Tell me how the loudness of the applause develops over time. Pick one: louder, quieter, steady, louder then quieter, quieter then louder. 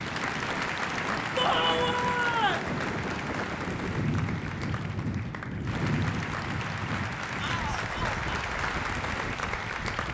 quieter then louder.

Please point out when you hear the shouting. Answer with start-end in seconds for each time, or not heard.
1.4-2.7, 7.3-8.2.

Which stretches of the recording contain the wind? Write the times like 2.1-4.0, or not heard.
0.0-10.0.